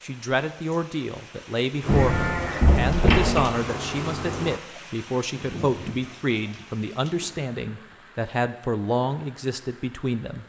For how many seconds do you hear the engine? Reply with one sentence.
The engine can be heard for 3 seconds in total.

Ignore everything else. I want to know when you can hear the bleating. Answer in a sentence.
You can hear the bleating from 1.9 to 3.5 s and from 5.3 to 8.0 s.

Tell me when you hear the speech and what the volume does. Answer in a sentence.
You can hear the speech from 0.0 to 10.4 s, at a steady volume.